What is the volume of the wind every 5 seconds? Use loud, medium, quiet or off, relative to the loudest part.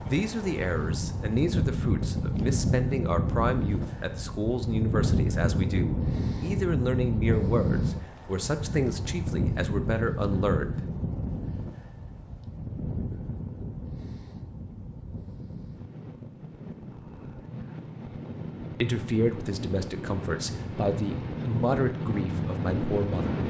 loud, loud, medium, medium, loud.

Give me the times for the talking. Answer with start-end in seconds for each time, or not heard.
0.0-10.8, 18.8-23.4.